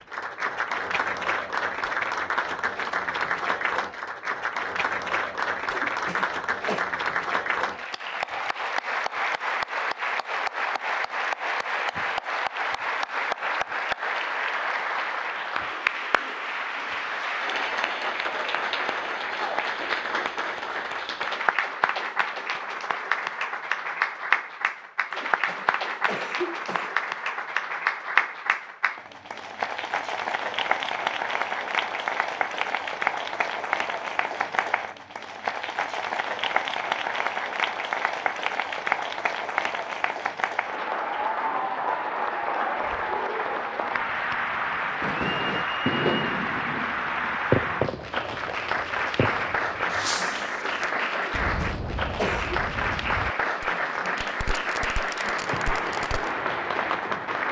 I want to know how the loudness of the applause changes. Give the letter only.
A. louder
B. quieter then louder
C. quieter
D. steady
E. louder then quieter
D.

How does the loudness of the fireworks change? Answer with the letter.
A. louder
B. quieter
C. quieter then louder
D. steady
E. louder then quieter
B.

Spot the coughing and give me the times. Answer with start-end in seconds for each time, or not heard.
5.7-6.8, 25.1-26.9, 51.2-52.6.